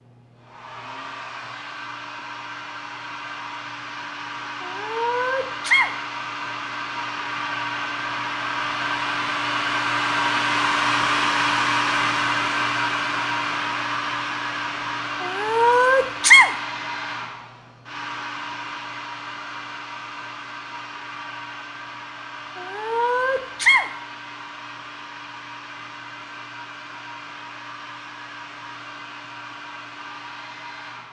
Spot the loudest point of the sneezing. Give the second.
16 s.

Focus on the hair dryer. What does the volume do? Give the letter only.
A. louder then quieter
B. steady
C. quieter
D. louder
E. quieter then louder
A.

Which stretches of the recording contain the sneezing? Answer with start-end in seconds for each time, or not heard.
4.6-5.9, 15.2-16.5, 22.6-23.9.